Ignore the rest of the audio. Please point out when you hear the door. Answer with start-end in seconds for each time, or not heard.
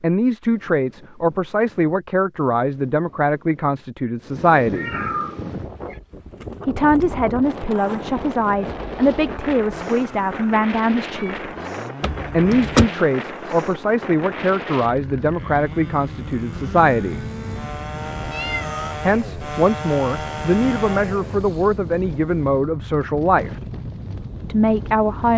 12.0-12.9.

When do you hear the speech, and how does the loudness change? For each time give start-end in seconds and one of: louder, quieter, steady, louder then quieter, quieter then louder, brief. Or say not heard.
0.0-4.9 steady
6.7-11.5 steady
12.3-17.2 steady
19.1-23.5 steady
24.4-25.3 brief.